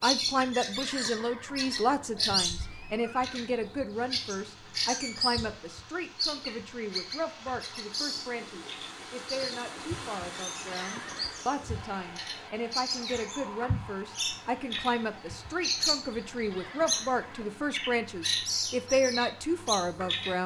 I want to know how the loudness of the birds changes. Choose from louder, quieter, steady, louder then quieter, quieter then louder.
quieter then louder.